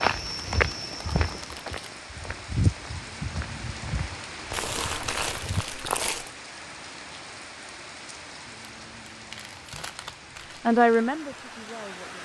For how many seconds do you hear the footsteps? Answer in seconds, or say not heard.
6 s.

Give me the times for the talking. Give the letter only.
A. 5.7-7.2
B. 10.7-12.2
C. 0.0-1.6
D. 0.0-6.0
B.